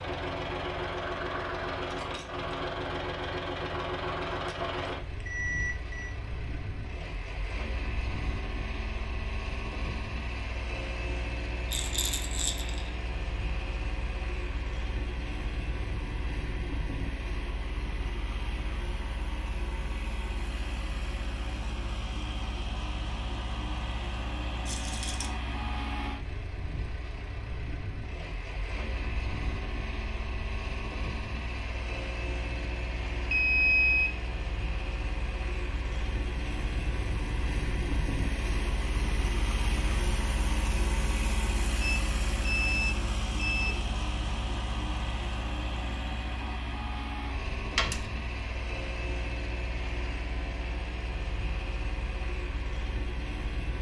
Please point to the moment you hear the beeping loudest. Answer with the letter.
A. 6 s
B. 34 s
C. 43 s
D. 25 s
B.